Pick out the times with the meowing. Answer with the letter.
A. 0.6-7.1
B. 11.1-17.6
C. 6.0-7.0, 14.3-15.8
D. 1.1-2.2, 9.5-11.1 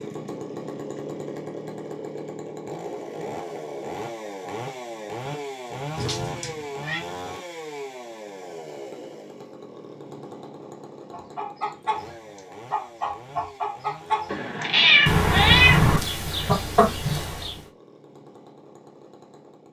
C.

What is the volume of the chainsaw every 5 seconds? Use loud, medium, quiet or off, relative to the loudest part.
loud, loud, medium, quiet.